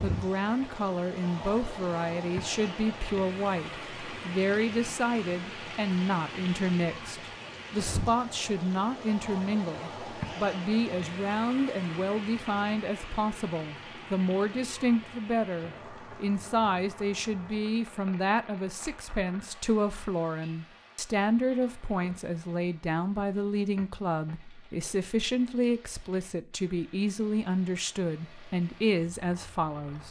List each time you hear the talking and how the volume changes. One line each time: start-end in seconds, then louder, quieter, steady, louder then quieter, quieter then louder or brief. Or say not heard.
0.0-30.0 steady.